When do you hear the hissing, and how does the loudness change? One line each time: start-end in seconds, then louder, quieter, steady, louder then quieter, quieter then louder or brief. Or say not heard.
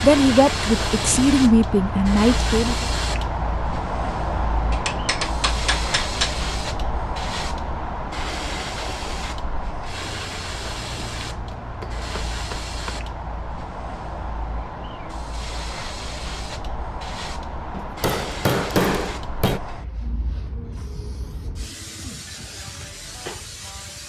0.0-24.0 quieter.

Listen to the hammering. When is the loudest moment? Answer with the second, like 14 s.
19 s.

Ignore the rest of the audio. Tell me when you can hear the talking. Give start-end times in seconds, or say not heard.
0.0-2.9.